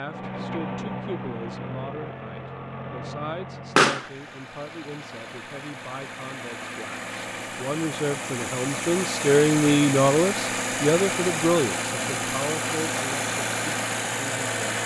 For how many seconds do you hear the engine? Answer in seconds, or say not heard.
15 s.